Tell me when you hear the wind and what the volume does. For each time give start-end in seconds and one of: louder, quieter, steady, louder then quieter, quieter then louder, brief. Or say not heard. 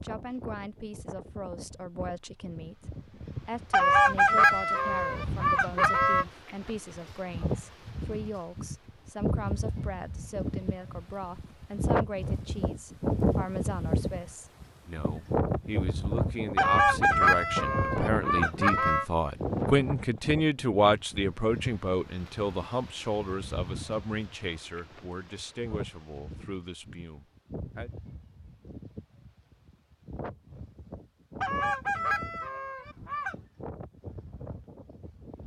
0.0-35.4 louder then quieter.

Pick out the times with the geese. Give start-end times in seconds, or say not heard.
3.7-6.2, 16.6-19.1, 31.4-33.4.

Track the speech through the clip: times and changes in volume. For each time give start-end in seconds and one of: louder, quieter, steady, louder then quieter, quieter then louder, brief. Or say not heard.
0.0-27.9 louder then quieter.